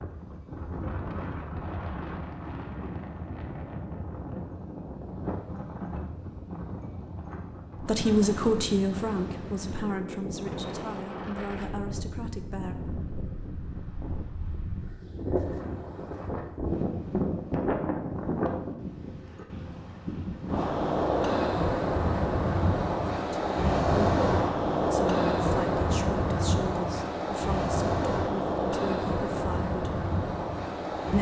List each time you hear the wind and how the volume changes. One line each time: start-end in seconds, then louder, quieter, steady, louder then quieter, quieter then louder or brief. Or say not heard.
0.0-31.1 louder.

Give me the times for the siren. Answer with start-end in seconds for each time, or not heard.
not heard.